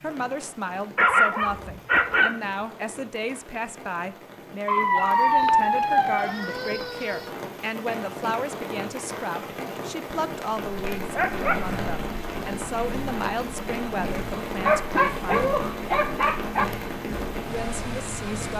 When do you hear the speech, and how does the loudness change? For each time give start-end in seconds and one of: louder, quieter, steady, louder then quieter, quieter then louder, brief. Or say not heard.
0.0-15.5 steady
17.4-18.5 brief.